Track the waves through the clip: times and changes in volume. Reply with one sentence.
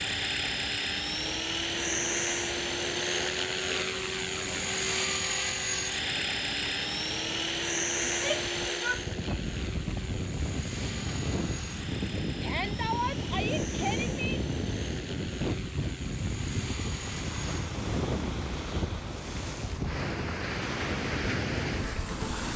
You can hear the waves from 0.0 to 22.5 s, getting louder.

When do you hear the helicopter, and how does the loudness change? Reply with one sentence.
You can hear the helicopter from 0.0 to 22.5 s, getting quieter.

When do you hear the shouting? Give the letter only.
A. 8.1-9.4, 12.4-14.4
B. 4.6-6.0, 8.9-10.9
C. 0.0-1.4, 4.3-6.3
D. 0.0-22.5
A.